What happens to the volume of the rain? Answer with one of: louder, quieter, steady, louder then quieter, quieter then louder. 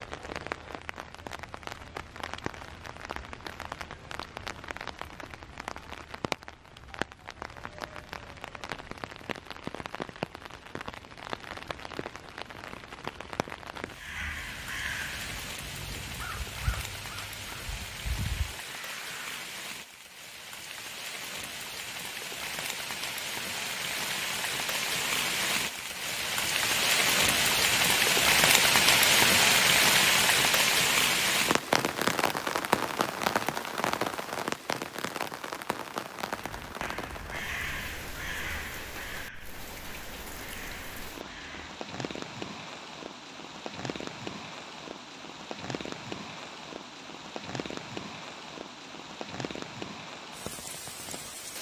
louder then quieter.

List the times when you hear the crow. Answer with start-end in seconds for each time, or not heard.
13.9-19.2, 36.3-41.9.